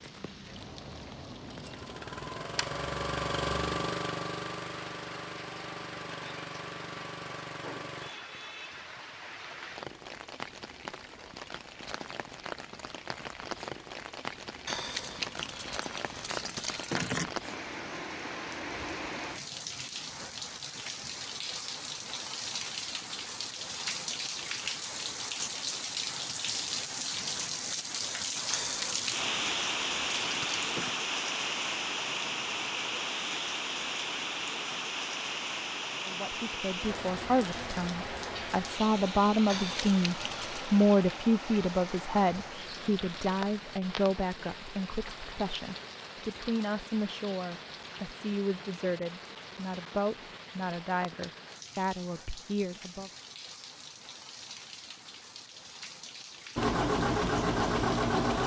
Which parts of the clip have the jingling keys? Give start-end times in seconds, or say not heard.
14.7-17.3, 28.5-30.9, 39.5-40.7.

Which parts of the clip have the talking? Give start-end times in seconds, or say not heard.
36.0-53.1.